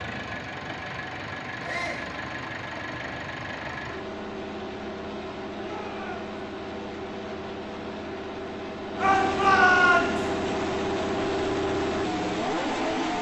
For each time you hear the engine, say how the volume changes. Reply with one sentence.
The engine can be heard from 0.0 to 13.1 s, getting louder.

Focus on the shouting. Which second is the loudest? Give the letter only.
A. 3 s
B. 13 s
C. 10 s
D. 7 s
C.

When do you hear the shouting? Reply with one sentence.
The shouting can be heard from 1.6 to 2.1 s, from 5.5 to 6.3 s and from 9.0 to 10.2 s.